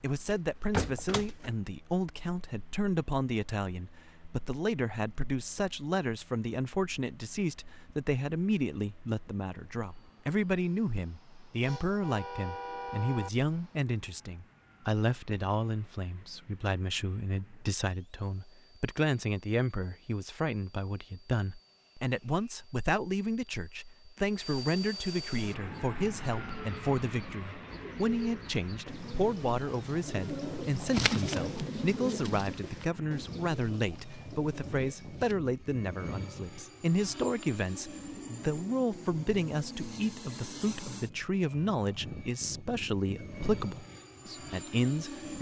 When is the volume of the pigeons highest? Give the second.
31 s.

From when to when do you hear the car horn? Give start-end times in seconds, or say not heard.
11.6-13.3.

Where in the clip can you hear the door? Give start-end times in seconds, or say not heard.
0.3-1.5.